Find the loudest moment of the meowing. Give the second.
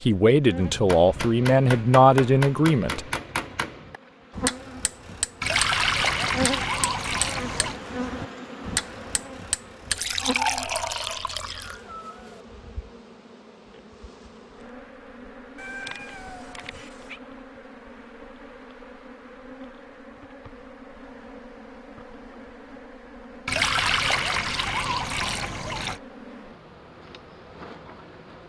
16 s.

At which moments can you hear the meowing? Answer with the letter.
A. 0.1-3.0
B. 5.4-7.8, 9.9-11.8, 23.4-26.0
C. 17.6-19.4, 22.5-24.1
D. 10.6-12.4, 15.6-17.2
D.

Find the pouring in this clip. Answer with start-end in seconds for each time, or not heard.
5.4-7.8, 9.9-11.8, 23.4-26.0.